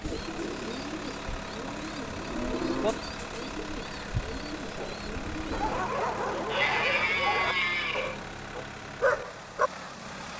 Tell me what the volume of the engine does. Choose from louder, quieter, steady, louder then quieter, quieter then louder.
steady.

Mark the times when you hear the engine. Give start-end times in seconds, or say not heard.
0.0-10.3.